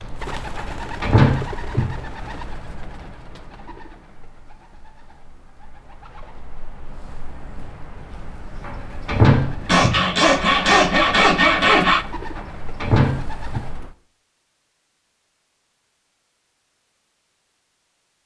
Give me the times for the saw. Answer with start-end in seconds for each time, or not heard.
9.7-12.1.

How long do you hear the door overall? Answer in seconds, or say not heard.
4 s.